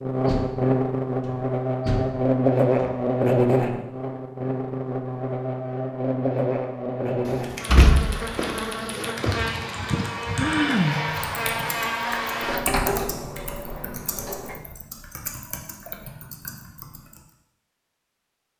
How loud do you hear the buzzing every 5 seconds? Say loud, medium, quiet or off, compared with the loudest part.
loud, medium, medium, off.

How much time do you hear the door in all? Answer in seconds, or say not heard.
7 s.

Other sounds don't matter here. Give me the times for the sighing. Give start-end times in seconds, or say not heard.
9.3-11.3.